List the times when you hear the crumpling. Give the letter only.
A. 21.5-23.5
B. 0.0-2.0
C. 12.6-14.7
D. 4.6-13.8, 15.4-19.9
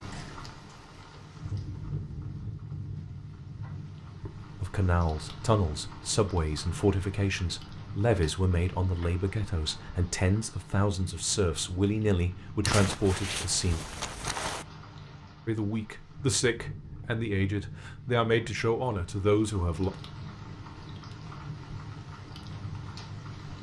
C.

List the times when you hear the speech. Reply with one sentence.
The speech can be heard from 4.6 to 13.8 s and from 15.4 to 19.9 s.